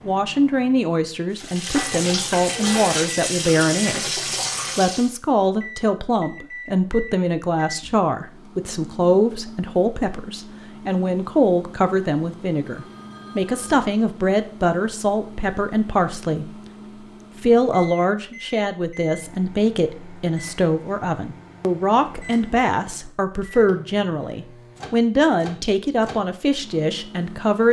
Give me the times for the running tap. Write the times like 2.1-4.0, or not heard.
1.4-5.2.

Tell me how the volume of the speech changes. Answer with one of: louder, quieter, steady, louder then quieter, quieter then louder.
steady.